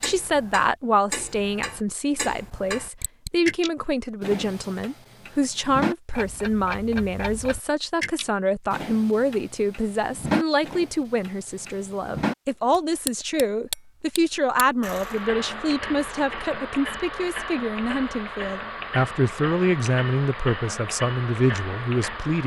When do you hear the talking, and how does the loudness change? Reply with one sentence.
You can hear the talking from 0.0 to 22.4 s, at a steady volume.